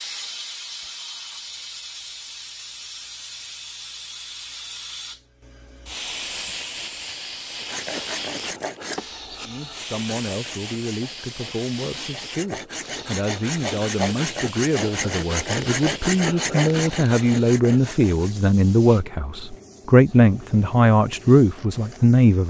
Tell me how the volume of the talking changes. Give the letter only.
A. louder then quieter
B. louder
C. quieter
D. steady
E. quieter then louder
B.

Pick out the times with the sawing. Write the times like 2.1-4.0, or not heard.
7.6-18.4.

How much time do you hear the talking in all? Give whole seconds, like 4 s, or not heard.
13 s.